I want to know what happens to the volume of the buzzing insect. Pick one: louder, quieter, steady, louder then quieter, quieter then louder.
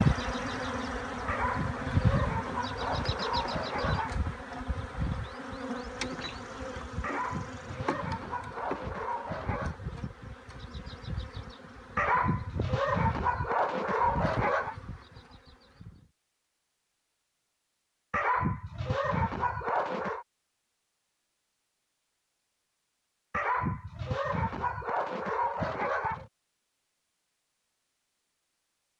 quieter.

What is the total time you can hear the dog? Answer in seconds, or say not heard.
14 s.